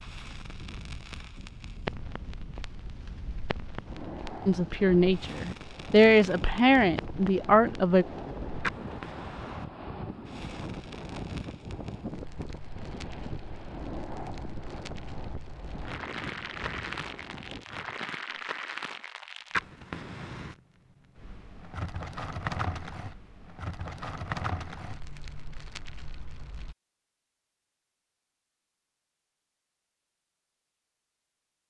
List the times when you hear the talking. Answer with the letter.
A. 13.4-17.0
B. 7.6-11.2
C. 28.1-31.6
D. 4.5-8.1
D.